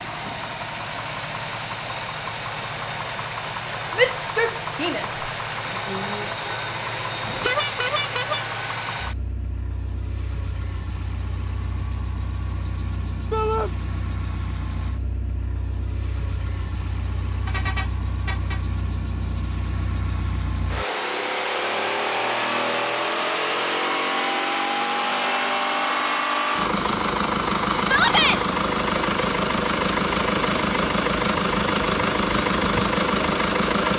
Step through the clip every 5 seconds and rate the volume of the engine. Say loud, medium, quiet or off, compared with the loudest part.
medium, medium, quiet, quiet, loud, loud, loud.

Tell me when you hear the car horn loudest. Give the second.
8 s.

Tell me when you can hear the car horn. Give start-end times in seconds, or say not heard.
7.2-8.4, 17.4-18.6.